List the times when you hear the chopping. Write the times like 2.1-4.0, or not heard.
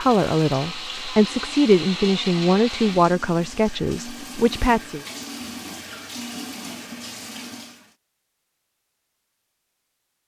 not heard.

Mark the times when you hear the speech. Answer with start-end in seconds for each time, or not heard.
0.0-5.0.